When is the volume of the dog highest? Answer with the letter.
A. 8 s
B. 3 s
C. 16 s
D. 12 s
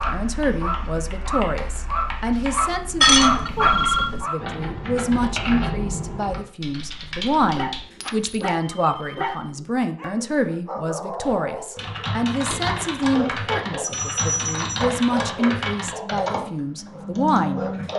B.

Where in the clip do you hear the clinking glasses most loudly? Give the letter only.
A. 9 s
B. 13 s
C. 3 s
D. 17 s
C.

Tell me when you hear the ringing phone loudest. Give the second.
4 s.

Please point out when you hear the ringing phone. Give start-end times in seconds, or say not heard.
3.5-4.1, 8.0-9.5, 13.8-14.8.